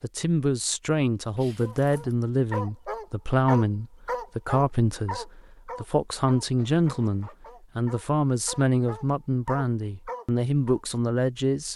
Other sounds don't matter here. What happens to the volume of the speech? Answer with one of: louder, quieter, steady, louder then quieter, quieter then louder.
steady.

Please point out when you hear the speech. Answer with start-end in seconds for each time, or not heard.
0.0-11.7.